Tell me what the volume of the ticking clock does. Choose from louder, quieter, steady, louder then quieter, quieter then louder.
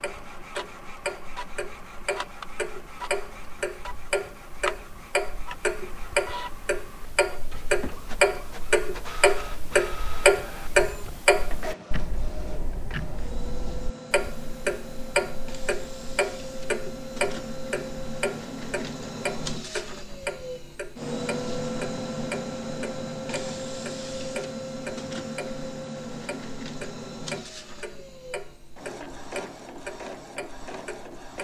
louder then quieter.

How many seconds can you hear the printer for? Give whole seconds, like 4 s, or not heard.
31 s.